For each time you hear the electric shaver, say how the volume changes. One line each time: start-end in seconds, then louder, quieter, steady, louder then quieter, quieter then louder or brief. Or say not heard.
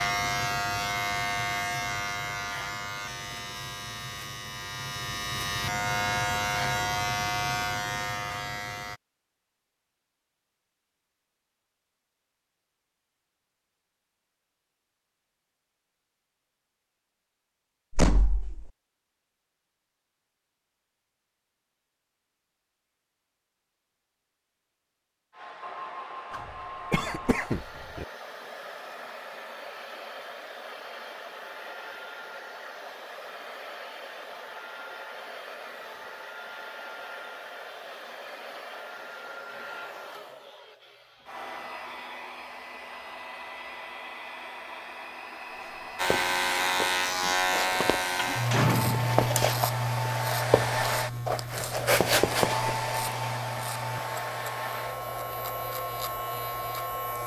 0.0-9.0 quieter then louder
46.0-57.2 quieter.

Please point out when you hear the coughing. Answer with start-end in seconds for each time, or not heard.
26.3-28.1.